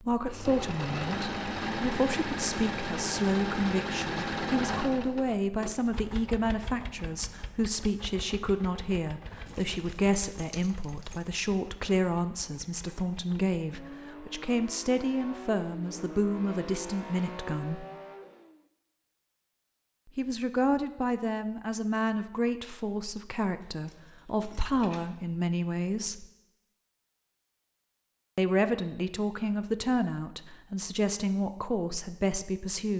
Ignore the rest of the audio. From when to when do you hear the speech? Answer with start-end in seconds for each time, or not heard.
0.0-17.9, 20.1-26.2, 28.4-32.9.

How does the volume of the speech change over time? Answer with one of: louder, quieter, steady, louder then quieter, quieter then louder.
steady.